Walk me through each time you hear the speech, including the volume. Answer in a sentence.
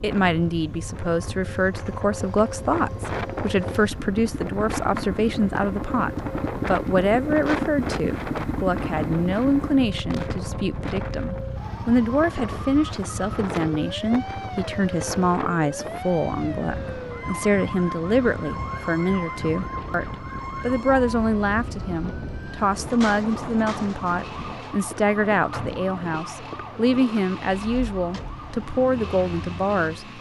You can hear the speech from 0.0 to 30.1 s, at a steady volume.